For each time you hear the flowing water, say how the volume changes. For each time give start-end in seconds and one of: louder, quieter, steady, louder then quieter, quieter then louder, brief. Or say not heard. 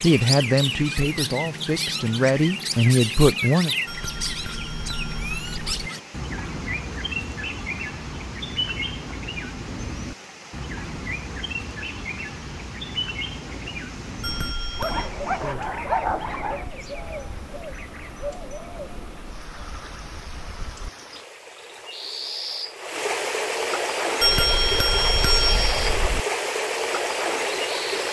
0.0-28.0 louder.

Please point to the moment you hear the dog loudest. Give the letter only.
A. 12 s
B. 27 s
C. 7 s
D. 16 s
D.